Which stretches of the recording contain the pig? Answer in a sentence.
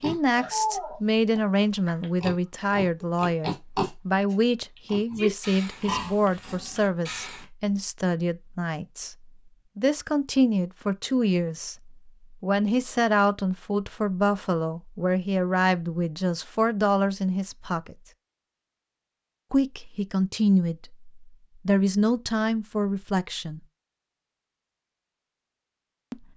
The pig can be heard from 0.0 to 7.5 s.